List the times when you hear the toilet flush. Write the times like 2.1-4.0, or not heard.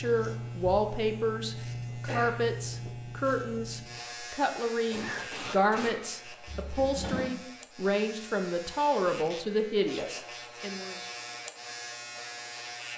6.5-7.3.